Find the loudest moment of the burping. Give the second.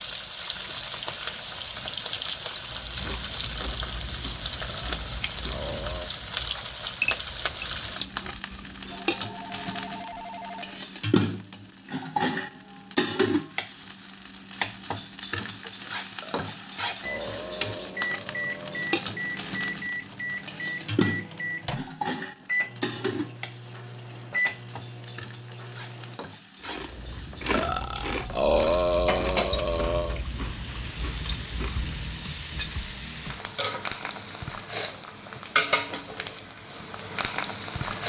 29 s.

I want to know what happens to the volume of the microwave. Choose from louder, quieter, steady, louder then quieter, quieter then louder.
steady.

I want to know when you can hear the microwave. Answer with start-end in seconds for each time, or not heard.
17.0-26.2.